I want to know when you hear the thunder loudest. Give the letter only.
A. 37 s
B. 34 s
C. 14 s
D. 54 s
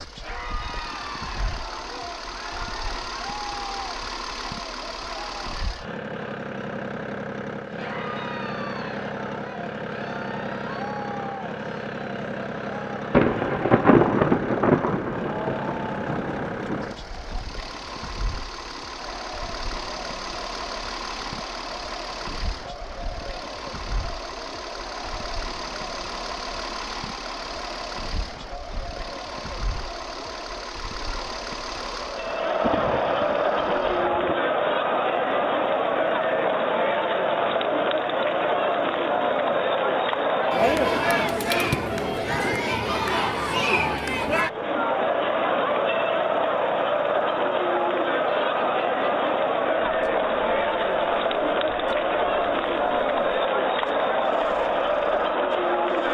C.